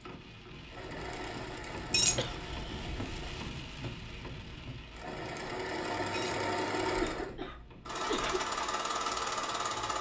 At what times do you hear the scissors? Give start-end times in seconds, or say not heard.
not heard.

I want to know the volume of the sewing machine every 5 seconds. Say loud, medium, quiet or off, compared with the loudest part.
medium, loud.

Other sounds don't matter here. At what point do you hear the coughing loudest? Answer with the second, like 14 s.
8 s.